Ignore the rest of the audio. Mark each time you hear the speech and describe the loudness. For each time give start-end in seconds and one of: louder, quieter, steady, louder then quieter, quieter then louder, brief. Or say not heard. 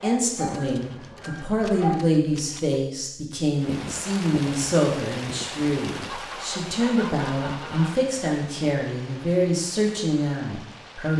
0.0-11.1 steady.